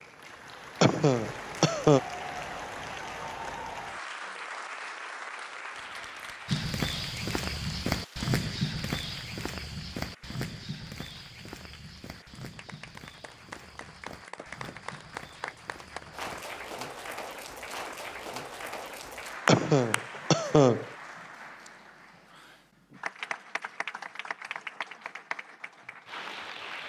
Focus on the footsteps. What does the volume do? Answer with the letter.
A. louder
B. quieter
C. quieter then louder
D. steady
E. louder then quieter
B.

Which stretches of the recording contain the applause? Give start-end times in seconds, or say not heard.
0.0-26.8.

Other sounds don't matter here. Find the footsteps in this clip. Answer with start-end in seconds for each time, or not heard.
6.5-16.4.